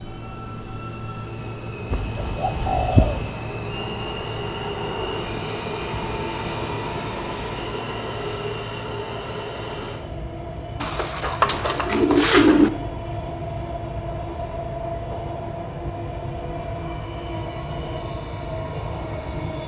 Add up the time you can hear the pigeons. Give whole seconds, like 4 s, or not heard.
3 s.